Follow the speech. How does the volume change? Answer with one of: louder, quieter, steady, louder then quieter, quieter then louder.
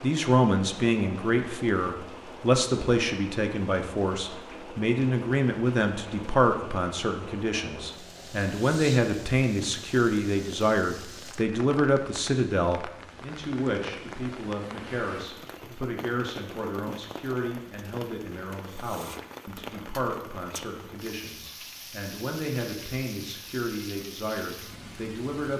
quieter.